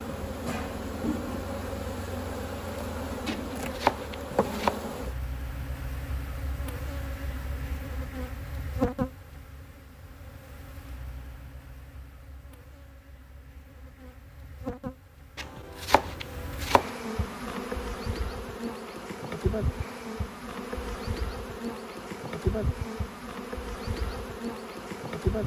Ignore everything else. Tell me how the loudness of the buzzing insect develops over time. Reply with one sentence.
The volume of the buzzing insect goes down, then up.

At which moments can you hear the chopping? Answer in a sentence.
The chopping can be heard from 3.3 to 4.8 s and from 15.3 to 16.9 s.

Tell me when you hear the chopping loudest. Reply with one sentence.
The loudest moment of the chopping is at 4 seconds.